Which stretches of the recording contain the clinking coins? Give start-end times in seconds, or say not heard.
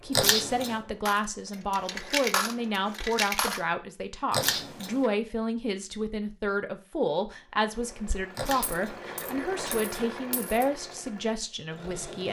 1.1-3.6, 8.1-10.7.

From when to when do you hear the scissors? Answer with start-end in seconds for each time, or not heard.
0.1-0.8, 4.3-5.1, 8.3-10.1.